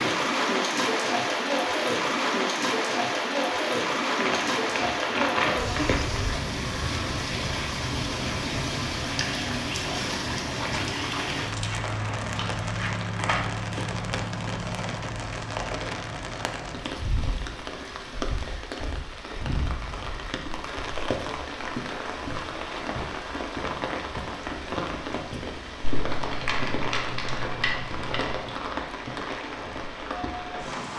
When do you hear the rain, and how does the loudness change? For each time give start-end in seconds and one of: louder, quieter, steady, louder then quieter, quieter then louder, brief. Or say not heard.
0.0-30.9 quieter.